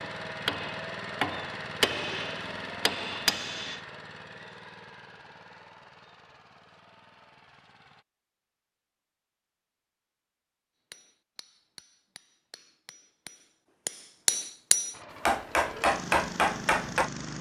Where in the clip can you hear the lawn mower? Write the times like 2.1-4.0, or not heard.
0.0-8.1, 14.9-17.3.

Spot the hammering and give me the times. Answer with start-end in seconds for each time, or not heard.
0.0-3.8, 10.9-17.1.